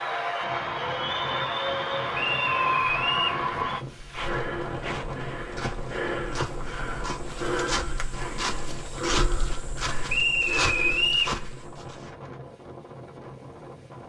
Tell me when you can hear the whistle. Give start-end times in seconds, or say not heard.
2.1-3.4, 10.1-11.3.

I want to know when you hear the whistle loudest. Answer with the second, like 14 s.
11 s.